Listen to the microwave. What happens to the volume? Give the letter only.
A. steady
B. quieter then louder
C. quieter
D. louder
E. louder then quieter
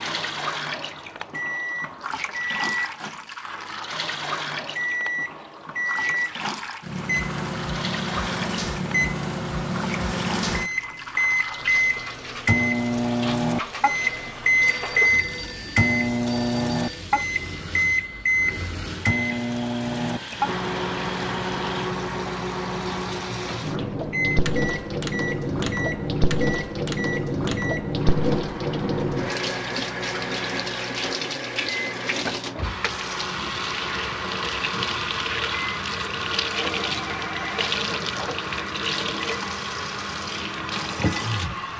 E.